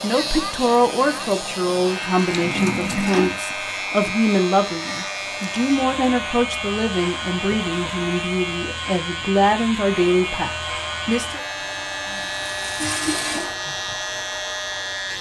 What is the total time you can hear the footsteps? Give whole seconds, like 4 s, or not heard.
not heard.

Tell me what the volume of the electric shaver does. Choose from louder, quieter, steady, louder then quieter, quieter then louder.
steady.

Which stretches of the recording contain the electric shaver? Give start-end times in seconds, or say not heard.
0.0-15.1.